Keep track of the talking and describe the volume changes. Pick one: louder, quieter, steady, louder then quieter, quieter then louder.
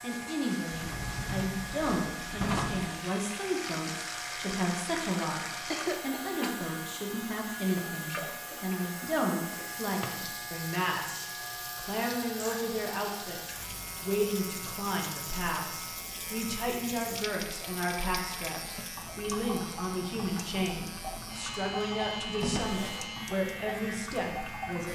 steady.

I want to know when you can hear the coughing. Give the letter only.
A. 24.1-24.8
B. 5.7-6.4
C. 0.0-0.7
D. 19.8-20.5
B.